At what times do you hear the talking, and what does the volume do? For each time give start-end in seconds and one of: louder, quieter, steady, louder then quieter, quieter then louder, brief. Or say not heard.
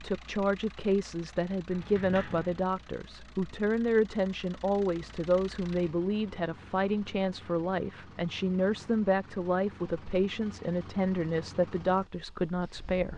0.0-13.1 steady.